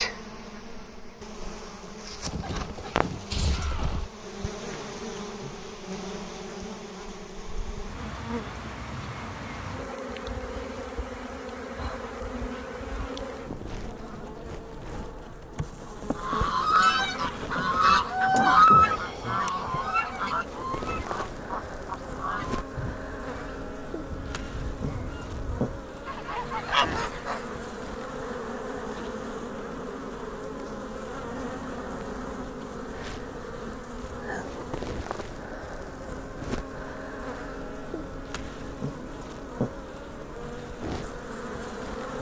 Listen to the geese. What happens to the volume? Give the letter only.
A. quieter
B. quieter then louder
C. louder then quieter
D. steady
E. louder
B.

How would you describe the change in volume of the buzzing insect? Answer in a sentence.
The volume of the buzzing insect stays about the same.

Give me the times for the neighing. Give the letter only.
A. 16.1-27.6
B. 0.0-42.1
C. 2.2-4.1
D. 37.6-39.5
C.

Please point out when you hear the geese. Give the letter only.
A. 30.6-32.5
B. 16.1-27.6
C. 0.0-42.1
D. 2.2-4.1
B.